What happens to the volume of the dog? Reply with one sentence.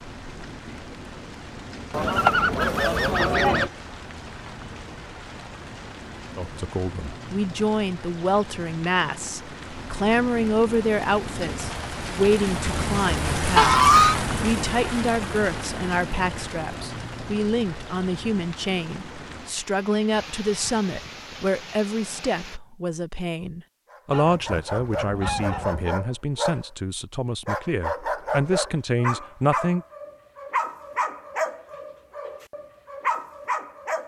The loudness of the dog stays about the same.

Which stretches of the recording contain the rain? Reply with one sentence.
The rain can be heard from 0.0 to 22.6 s.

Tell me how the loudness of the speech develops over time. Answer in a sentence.
The loudness of the speech stays about the same.